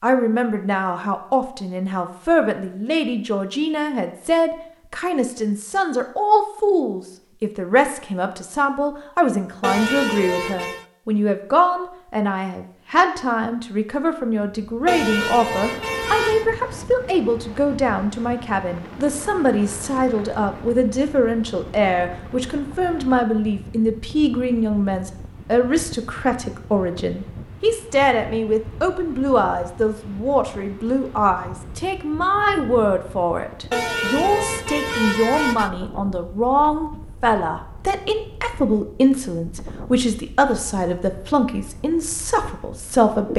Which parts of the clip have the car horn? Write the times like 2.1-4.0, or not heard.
9.6-10.8, 14.8-16.4, 33.7-35.7.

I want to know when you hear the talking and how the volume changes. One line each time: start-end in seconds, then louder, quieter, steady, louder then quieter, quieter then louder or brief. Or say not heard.
0.0-43.3 steady.